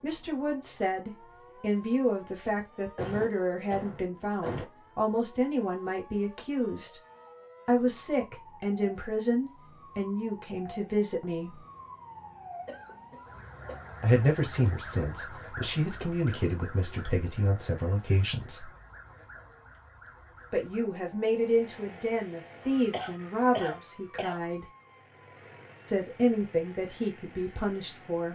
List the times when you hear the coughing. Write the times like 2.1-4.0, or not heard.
3.0-4.7, 12.7-13.9, 22.9-24.4.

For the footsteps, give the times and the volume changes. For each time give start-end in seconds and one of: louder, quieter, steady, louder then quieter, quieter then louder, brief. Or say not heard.
not heard.